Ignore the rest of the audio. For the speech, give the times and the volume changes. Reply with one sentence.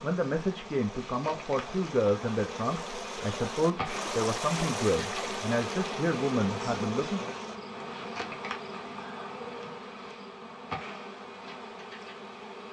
You can hear the speech from 0.0 to 7.2 s, at a steady volume.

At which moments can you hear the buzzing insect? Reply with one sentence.
The buzzing insect can be heard from 0.0 to 12.6 s.